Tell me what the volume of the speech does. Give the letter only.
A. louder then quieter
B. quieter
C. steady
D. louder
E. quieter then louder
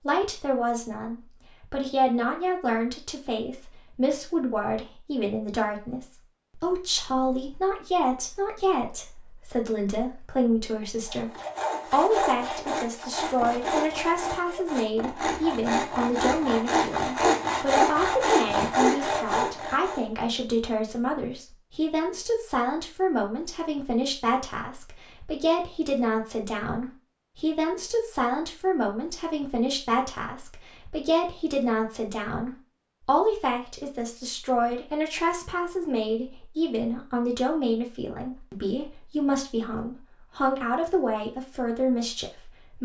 C.